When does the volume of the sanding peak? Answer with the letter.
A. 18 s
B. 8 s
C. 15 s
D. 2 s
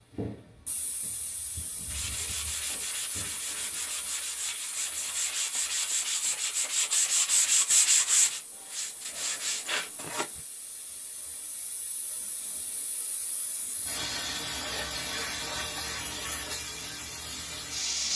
B.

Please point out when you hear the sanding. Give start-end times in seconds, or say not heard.
1.9-10.4.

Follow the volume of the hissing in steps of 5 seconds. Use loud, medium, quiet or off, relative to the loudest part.
medium, quiet, medium, loud.